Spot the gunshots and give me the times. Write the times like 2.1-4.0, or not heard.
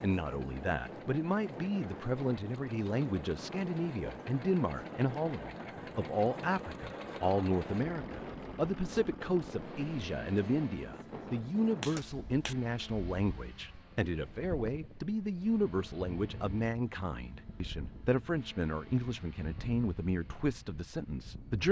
11.8-12.6.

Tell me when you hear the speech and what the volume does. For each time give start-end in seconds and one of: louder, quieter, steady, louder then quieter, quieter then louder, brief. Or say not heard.
0.0-21.6 steady.